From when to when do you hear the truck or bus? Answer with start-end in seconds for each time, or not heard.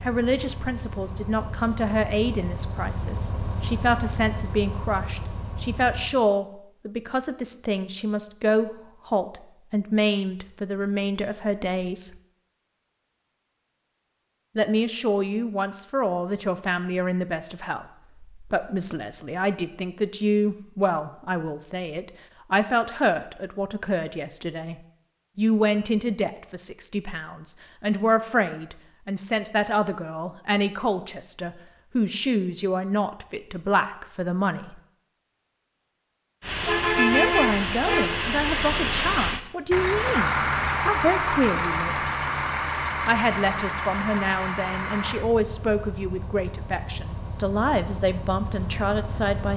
0.0-6.2, 36.4-49.5.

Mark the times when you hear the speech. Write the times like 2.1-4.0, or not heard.
0.0-12.1, 14.6-24.8, 25.4-34.8, 37.0-42.0, 43.0-49.5.